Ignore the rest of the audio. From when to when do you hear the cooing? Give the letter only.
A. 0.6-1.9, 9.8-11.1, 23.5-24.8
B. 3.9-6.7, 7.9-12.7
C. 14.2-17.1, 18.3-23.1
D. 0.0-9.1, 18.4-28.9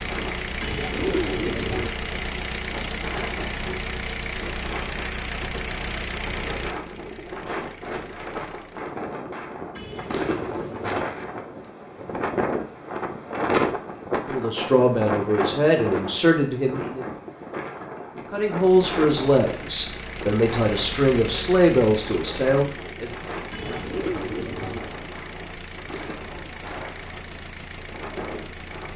A.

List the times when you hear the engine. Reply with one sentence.
The engine can be heard from 0.0 to 9.1 s and from 18.4 to 28.9 s.